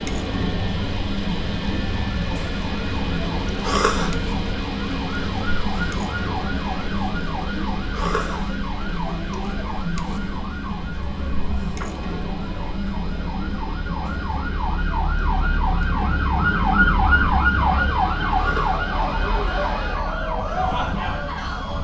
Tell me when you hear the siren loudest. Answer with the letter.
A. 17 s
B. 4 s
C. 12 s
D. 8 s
A.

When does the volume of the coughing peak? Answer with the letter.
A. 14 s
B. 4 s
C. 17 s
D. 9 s
B.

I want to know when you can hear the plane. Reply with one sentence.
The plane can be heard from 0.0 to 21.7 s.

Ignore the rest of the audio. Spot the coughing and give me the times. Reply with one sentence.
You can hear the coughing from 3.6 to 4.2 s, from 7.9 to 8.4 s and from 18.4 to 18.9 s.